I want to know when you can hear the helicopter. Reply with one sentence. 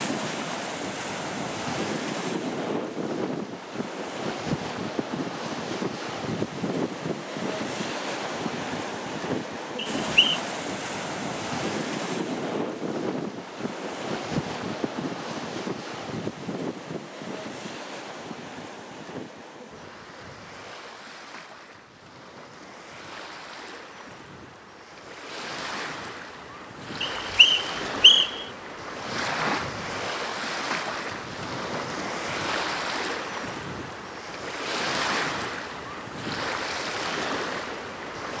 You can't hear the helicopter here.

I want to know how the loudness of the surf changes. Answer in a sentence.
The loudness of the surf goes down, then up.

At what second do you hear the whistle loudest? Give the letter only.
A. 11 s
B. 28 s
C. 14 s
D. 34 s
B.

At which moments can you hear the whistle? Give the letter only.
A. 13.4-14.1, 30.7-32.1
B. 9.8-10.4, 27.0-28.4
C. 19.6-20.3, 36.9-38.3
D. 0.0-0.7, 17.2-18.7
B.